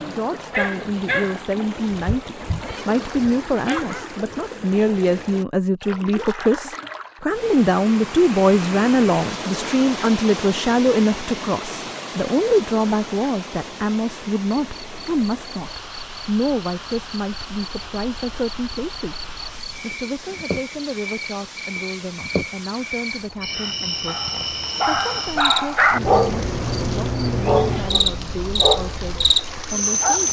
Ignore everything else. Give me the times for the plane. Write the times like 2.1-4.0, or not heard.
not heard.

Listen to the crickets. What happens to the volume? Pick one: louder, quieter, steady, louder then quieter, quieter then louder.
louder.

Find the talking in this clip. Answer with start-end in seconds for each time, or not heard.
0.1-30.2.